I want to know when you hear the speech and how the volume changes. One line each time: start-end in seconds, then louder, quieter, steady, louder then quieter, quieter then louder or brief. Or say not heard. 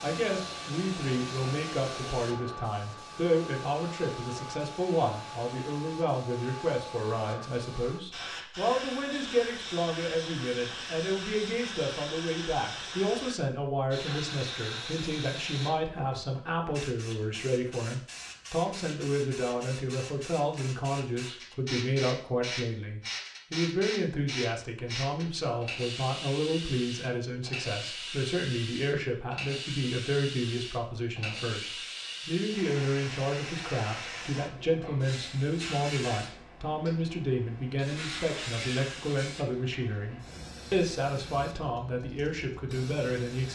0.0-43.4 steady.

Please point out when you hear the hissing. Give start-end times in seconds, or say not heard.
0.0-43.4.